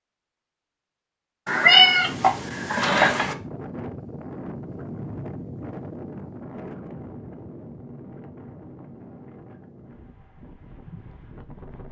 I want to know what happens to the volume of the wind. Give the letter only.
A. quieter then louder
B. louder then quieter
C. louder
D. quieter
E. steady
D.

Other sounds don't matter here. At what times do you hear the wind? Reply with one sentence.
The wind can be heard from 2.0 to 11.8 s.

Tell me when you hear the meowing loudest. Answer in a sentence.
The loudest moment of the meowing is at 2 seconds.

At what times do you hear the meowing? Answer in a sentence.
The meowing can be heard from 1.4 to 3.4 s.